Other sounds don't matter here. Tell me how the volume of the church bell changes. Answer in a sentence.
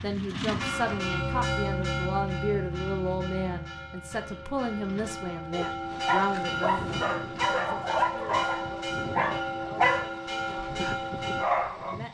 The loudness of the church bell goes down, then up.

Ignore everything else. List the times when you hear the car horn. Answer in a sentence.
You can't hear the car horn here.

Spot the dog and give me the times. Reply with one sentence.
The dog can be heard from 5.5 to 11.9 s.